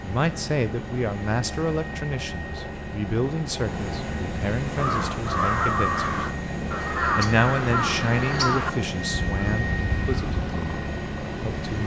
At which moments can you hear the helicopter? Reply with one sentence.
You can hear the helicopter from 0.0 to 11.8 s.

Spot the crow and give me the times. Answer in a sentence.
You can hear the crow from 4.6 to 10.5 s.